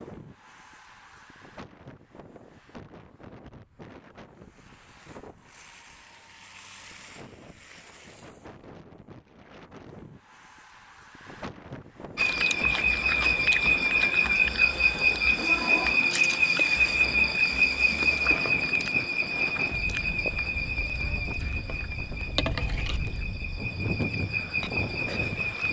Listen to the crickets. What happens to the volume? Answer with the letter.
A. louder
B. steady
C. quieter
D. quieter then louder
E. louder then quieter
C.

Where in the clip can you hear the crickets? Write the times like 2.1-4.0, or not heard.
12.2-25.6.